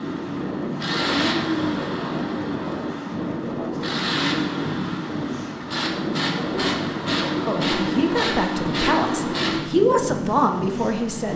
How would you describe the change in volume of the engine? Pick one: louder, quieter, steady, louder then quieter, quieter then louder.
quieter then louder.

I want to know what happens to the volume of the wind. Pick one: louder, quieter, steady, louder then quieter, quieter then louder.
steady.